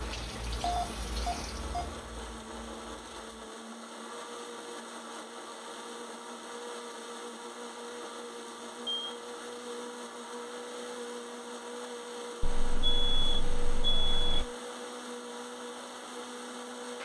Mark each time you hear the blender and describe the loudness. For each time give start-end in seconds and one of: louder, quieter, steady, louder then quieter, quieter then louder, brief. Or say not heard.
0.0-17.0 steady.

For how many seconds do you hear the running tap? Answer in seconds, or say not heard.
3 s.